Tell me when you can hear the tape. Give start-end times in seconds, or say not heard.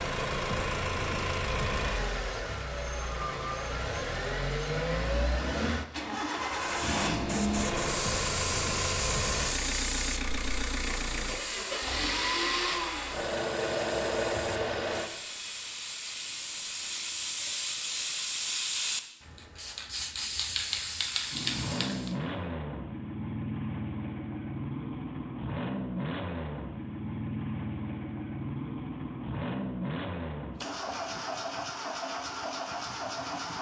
not heard.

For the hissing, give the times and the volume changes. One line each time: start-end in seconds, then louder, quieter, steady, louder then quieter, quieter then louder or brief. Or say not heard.
6.5-22.1 quieter then louder.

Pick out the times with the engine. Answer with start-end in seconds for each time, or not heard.
0.0-15.1, 21.3-33.5.